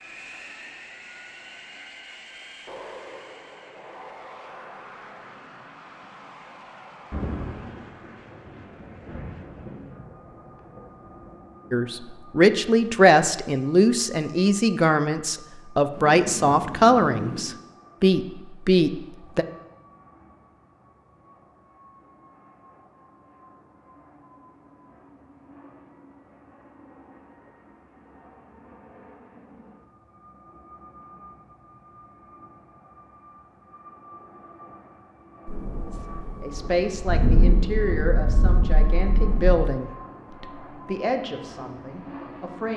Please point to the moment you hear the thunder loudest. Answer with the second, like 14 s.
37 s.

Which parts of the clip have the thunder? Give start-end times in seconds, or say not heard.
7.1-11.3, 15.9-17.4, 35.5-39.7.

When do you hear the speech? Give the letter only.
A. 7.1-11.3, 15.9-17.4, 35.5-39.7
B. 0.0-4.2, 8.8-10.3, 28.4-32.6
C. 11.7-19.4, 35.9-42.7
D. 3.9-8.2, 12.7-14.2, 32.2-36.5
C.